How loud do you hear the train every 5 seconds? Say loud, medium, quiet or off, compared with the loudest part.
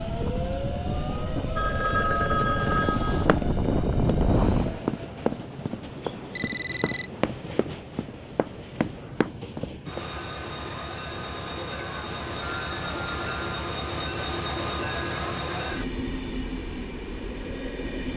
medium, medium, loud, loud.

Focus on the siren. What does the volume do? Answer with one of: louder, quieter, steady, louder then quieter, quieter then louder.
louder.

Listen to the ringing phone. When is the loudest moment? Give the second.
2 s.